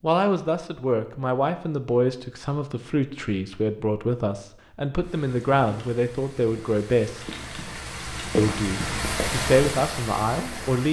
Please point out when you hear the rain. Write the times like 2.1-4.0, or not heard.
5.0-10.8.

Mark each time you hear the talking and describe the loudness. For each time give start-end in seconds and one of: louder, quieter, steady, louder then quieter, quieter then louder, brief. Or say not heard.
0.0-7.3 steady
8.3-10.8 brief.